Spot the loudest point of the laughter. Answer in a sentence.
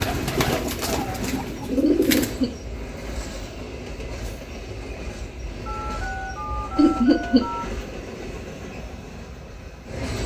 The loudest moment of the laughter is at 7 seconds.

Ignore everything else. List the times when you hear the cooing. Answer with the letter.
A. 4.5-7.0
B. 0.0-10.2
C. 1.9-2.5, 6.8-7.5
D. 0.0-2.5
D.